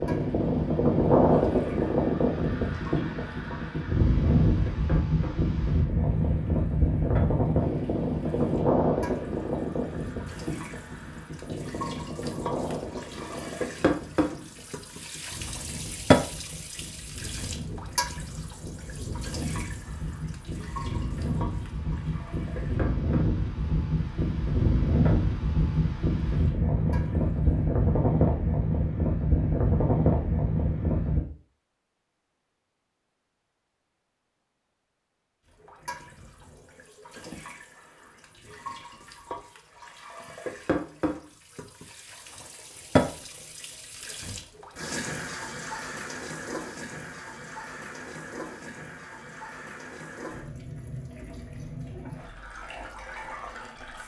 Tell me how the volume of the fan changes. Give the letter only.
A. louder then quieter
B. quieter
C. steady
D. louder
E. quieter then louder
E.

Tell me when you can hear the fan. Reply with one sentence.
You can hear the fan from 0.0 to 31.2 s.